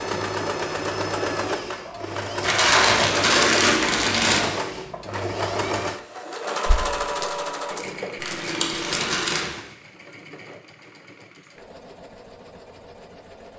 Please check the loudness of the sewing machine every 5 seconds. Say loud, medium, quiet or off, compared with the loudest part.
loud, loud, quiet.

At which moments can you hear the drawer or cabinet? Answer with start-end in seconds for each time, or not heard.
not heard.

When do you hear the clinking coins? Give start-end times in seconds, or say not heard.
6.7-9.2.